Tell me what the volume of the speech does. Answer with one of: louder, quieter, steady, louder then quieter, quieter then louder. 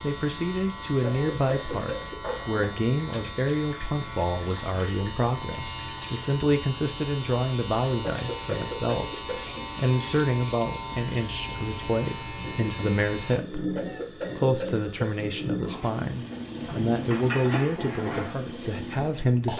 steady.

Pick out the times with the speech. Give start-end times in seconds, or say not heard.
0.0-19.5.